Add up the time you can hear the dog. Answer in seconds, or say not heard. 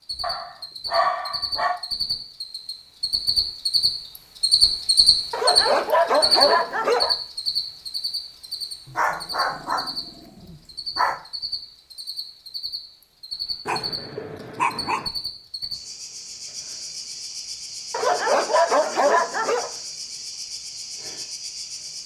9 s.